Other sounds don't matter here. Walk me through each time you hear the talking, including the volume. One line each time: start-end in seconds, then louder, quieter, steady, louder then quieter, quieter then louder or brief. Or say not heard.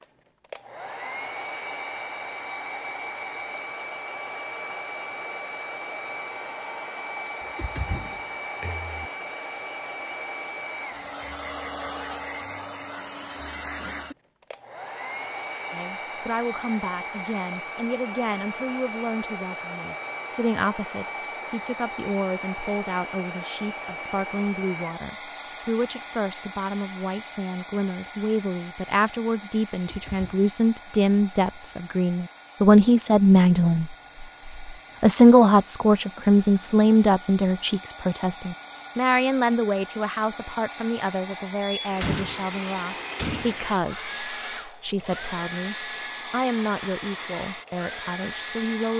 15.7-48.9 louder then quieter.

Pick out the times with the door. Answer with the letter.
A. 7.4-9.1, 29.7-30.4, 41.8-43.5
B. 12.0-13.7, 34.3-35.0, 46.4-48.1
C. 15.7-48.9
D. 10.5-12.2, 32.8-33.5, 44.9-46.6
A.